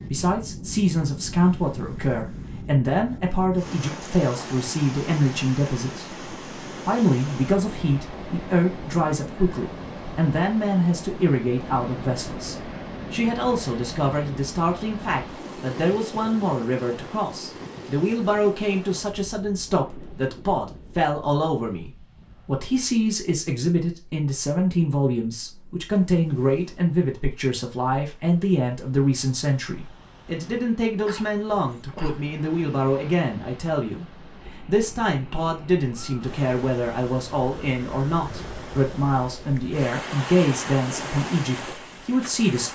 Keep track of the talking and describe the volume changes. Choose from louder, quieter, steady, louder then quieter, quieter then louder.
steady.